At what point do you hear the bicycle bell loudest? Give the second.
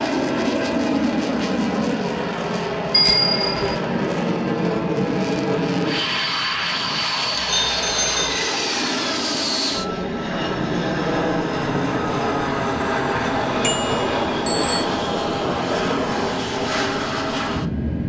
3 s.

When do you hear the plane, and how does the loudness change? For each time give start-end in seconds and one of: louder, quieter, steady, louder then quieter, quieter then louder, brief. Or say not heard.
0.0-18.0 steady.